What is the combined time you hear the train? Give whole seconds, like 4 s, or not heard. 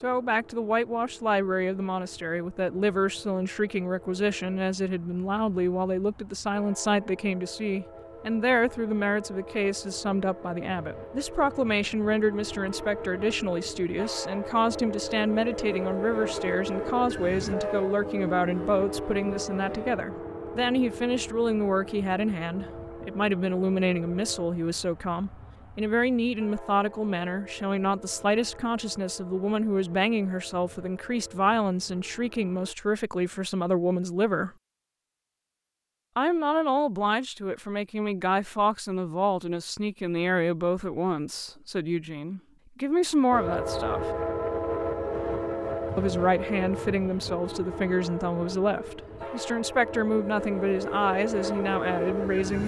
42 s.